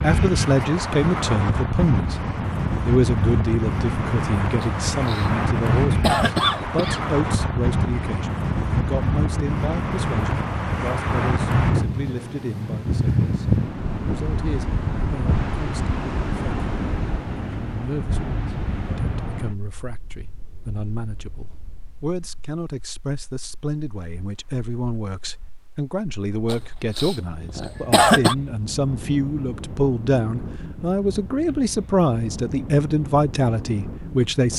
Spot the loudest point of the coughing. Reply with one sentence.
The volume of the coughing peaks at 28 seconds.